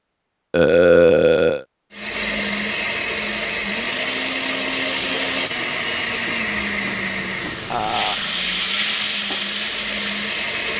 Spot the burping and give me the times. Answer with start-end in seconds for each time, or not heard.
0.5-1.6, 7.7-8.2.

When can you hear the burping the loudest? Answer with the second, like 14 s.
1 s.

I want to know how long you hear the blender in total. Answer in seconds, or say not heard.
9 s.